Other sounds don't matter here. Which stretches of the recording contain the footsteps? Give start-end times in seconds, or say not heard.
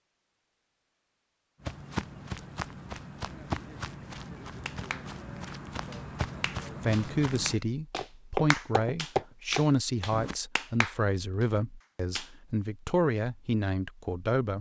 1.6-10.3.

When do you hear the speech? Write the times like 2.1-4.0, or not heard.
6.8-14.5.